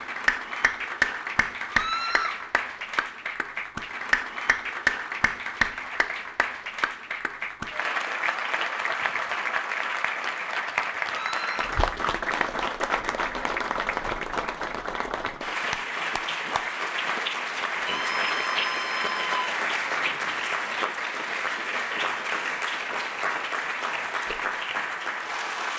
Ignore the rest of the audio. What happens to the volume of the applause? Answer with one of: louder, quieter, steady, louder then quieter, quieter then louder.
steady.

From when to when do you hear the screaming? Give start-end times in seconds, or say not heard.
1.7-2.4, 11.1-11.8, 17.9-19.4.